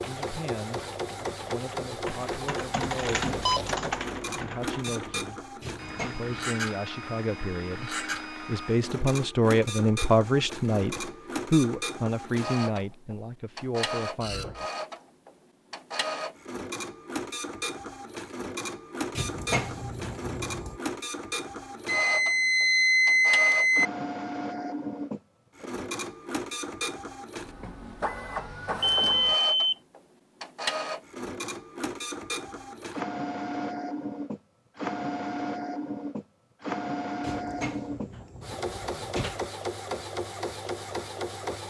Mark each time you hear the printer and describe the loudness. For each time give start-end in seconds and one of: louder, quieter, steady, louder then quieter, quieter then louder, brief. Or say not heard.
0.0-41.6 steady.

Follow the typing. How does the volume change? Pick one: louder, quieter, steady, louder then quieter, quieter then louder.
louder then quieter.